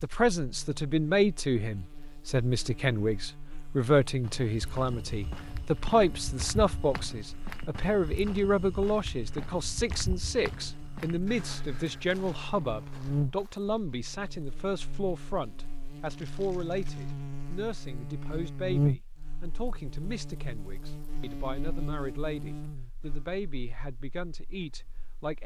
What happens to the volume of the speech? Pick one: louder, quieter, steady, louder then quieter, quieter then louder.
quieter.